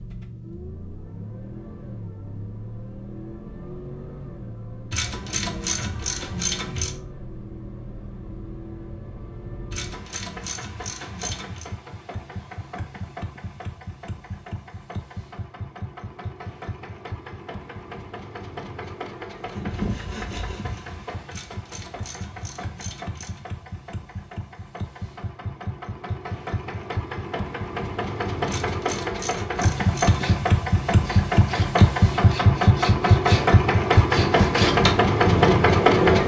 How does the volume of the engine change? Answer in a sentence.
The loudness of the engine goes up.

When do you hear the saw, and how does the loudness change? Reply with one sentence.
You can hear the saw briefly from 19.4 to 21.2 s; and from 30.1 to 36.2 s, getting louder.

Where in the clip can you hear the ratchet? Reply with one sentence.
You can hear the ratchet from 4.9 to 7.0 s, from 9.7 to 11.7 s, from 21.3 to 23.4 s and from 28.4 to 30.4 s.